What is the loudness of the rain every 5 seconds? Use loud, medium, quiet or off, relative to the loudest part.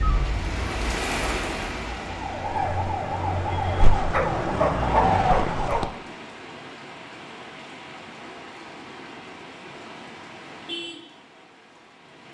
loud, medium, medium.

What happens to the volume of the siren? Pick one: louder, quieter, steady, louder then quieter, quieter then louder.
louder.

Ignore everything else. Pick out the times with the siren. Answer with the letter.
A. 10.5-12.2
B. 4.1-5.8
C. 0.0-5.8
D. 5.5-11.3
C.